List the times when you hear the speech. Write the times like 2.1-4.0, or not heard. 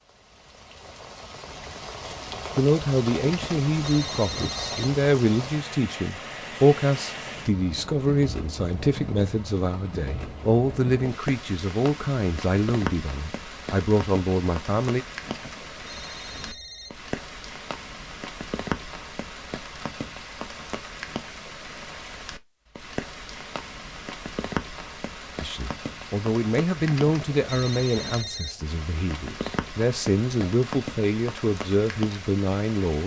2.5-15.1, 25.4-33.0.